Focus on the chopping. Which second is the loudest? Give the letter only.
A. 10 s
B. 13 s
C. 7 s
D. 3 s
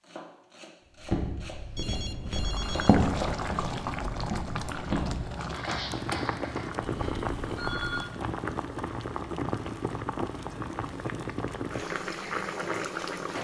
D.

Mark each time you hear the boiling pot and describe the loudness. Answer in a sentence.
You can hear the boiling pot from 2.2 to 13.3 s, at a steady volume.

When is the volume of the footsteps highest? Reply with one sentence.
The volume of the footsteps peaks at 3 seconds.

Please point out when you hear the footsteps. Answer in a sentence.
The footsteps can be heard from 0.9 to 6.7 s.